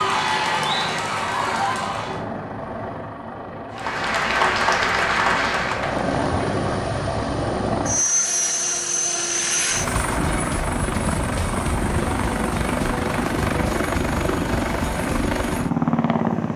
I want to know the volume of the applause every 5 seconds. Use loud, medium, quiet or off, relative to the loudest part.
loud, loud, off, off.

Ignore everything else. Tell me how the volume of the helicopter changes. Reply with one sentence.
The volume of the helicopter goes up.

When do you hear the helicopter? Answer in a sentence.
You can hear the helicopter from 0.0 to 16.5 s.